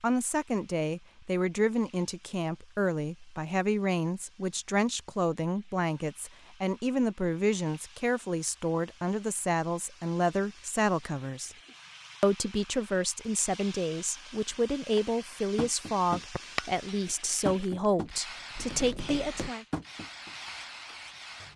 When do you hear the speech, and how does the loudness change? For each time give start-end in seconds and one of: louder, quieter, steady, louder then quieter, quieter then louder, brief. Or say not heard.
0.0-11.6 steady
12.2-19.6 steady.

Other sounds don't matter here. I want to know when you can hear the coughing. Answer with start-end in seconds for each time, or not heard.
not heard.